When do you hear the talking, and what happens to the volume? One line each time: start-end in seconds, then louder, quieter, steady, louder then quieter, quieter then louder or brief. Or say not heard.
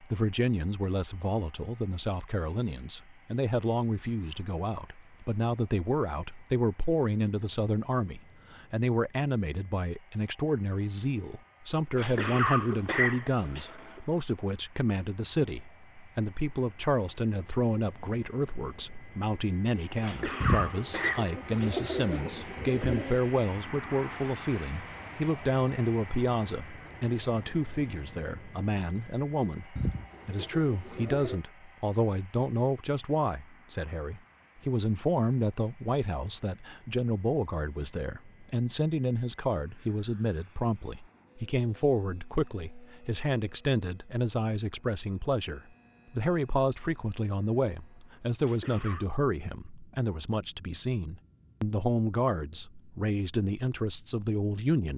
0.0-54.9 steady.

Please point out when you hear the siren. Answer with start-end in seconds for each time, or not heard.
not heard.